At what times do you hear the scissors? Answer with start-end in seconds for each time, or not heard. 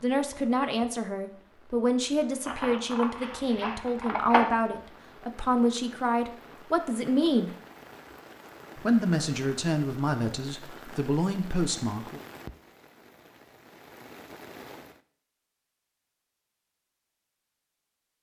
2.5-4.5.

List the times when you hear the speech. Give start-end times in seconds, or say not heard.
0.0-7.5, 8.8-12.2.